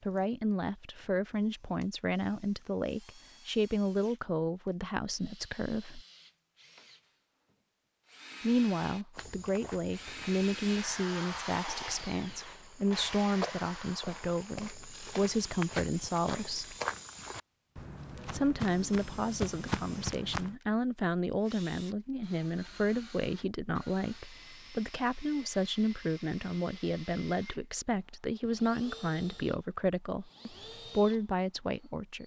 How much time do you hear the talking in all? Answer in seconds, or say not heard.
28 s.